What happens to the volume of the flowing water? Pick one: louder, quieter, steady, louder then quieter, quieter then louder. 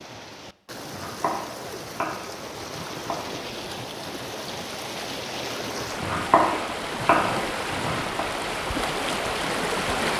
louder.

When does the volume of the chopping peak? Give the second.
6 s.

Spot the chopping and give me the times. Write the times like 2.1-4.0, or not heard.
0.9-3.2, 6.0-8.2.